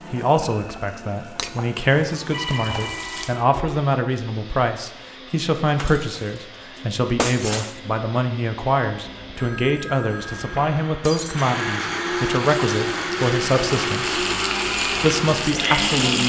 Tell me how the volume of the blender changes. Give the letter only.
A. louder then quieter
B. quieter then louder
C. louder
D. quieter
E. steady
C.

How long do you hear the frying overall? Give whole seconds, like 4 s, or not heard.
7 s.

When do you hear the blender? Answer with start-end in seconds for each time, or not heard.
0.0-16.2.